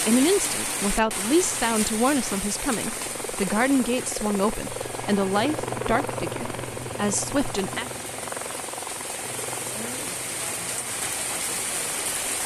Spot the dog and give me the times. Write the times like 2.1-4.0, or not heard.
not heard.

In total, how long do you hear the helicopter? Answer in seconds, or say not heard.
12 s.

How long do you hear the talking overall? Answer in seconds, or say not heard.
8 s.